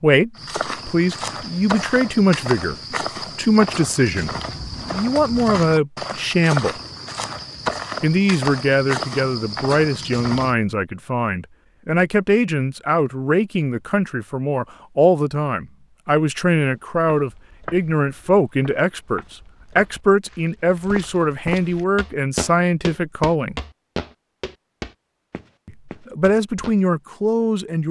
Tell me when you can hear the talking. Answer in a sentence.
You can hear the talking from 0.0 to 6.8 s, from 8.0 to 23.6 s and from 25.6 to 27.8 s.